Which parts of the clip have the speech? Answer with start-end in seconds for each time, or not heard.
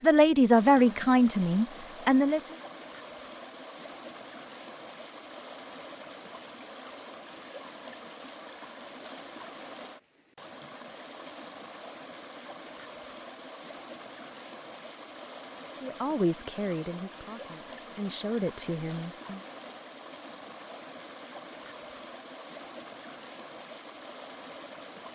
0.0-2.5, 15.8-19.4.